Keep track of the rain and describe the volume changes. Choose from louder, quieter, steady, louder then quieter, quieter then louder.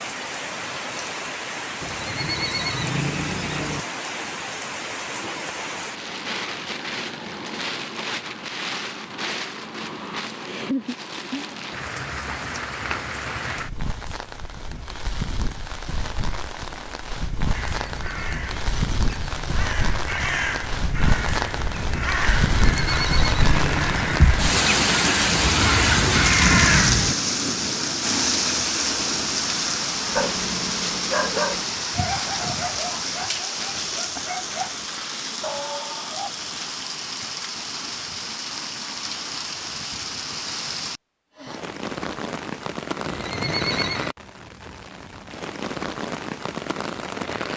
louder then quieter.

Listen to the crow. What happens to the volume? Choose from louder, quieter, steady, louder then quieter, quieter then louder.
louder.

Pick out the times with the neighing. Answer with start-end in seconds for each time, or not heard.
1.8-3.8, 22.6-24.3, 43.0-44.1.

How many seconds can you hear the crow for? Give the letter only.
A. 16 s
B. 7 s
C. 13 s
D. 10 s
D.